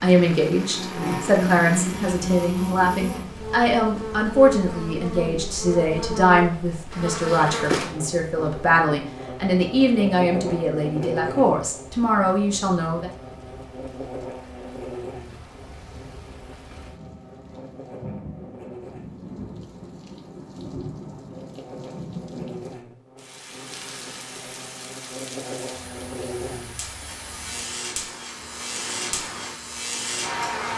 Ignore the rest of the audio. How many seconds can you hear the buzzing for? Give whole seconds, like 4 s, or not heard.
31 s.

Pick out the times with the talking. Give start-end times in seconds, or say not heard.
0.0-13.1.